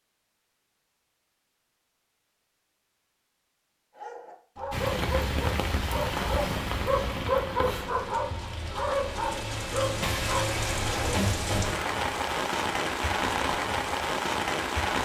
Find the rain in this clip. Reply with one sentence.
The rain can be heard from 4.7 to 15.0 s.